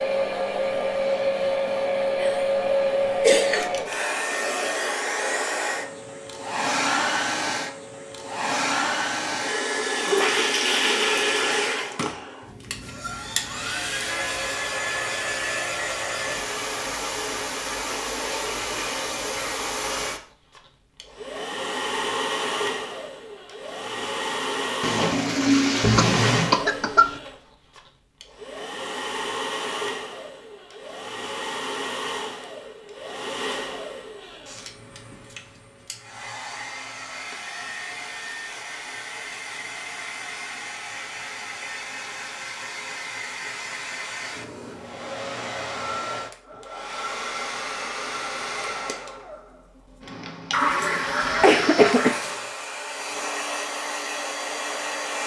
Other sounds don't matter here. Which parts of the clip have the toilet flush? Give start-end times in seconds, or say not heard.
9.8-11.9, 24.8-26.6, 50.5-52.5.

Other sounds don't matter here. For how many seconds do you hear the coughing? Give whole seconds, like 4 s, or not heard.
5 s.